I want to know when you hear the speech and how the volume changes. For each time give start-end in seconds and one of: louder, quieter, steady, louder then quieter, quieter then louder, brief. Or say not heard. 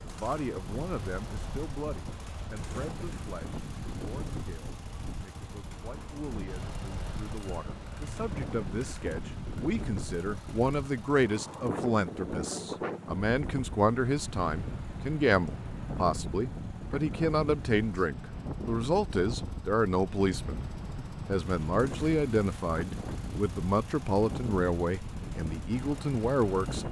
0.0-26.8 louder.